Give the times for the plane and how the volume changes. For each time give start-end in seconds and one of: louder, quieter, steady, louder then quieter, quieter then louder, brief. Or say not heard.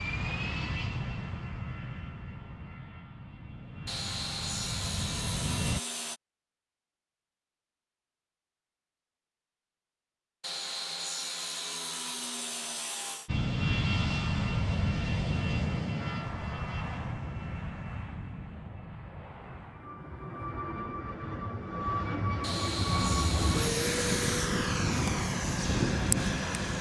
0.0-5.8 quieter then louder
13.2-26.7 quieter then louder.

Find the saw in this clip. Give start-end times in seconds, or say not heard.
3.9-6.2, 10.4-13.3, 22.4-24.4.